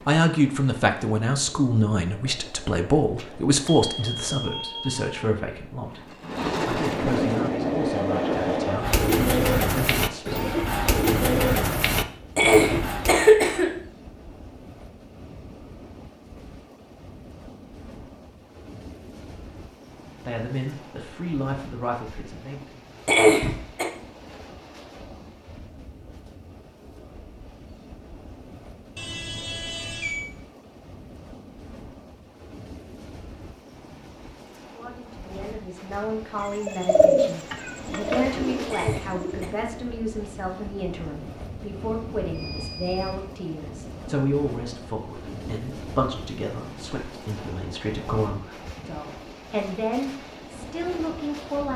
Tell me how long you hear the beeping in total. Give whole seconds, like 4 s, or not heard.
5 s.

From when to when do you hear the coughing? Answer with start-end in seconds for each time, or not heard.
12.3-13.7, 23.1-23.9, 38.7-39.5.